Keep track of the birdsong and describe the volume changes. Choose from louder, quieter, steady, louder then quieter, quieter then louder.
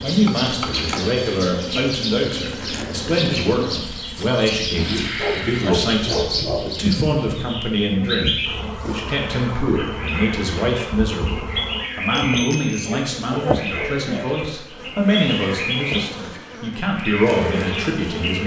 steady.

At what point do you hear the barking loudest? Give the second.
6 s.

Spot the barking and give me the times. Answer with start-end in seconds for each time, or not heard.
5.2-7.0, 12.8-14.4.